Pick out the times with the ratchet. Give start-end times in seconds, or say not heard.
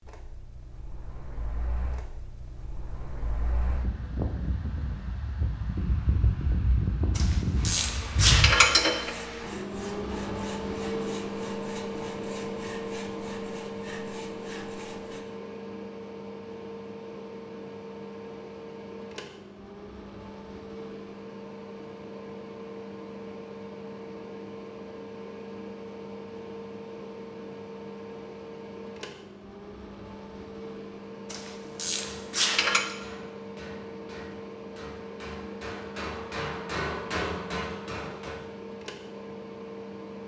7.2-9.1, 31.3-33.0.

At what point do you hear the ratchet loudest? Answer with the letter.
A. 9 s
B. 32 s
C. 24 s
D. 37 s
A.